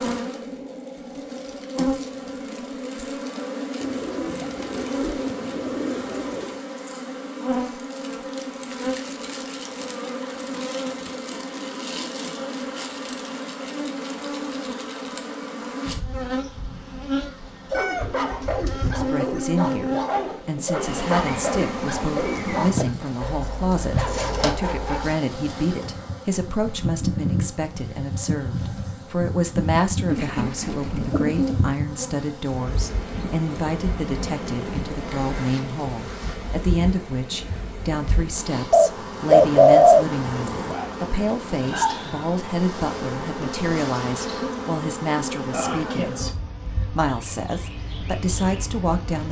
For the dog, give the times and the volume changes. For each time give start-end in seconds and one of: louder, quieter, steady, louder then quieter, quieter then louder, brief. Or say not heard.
17.5-25.1 steady.